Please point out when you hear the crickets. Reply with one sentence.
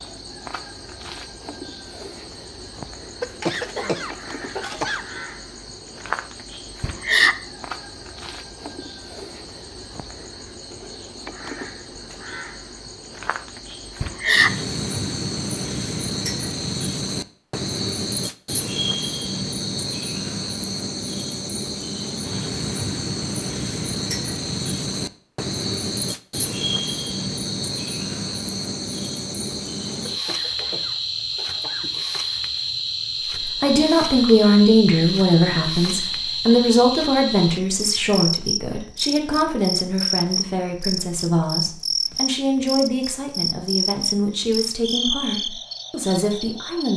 The crickets can be heard from 0.0 to 46.9 s.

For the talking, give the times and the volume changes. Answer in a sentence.
The talking can be heard from 33.5 to 46.9 s, getting quieter.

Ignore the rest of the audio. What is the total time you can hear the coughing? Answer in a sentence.
You can hear the coughing for 4 seconds altogether.